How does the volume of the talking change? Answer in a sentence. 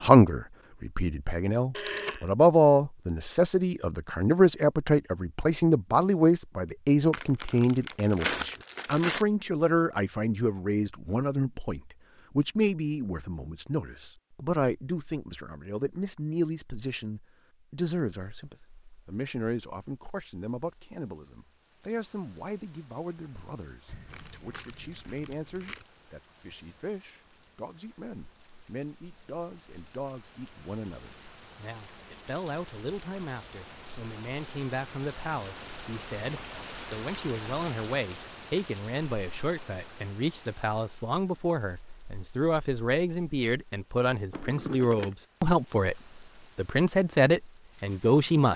The volume of the talking goes down, then up.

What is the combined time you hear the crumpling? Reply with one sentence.
You can hear the crumpling for 5 seconds altogether.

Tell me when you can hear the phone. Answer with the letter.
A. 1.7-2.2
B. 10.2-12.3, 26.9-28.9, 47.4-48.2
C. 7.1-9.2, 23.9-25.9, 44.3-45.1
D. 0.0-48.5
A.